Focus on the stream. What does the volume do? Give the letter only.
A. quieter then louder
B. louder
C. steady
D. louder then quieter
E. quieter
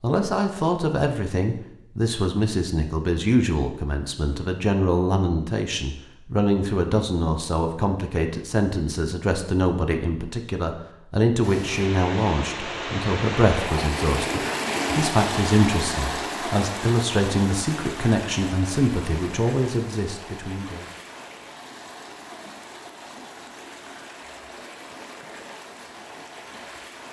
E.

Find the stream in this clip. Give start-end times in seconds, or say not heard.
11.4-27.0.